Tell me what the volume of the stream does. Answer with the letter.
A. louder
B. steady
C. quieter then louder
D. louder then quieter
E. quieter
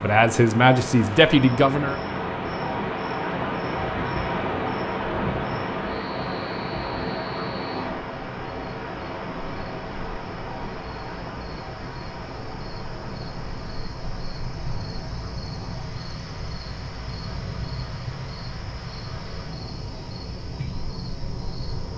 E.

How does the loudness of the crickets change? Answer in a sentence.
The volume of the crickets goes up.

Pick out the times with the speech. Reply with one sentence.
You can hear the speech from 0.0 to 2.0 s.